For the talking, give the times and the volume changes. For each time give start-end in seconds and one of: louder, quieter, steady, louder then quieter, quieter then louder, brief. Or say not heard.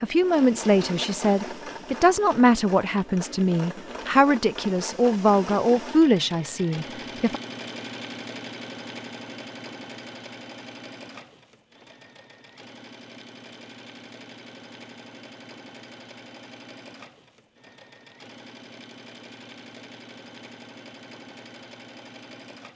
0.0-7.4 steady.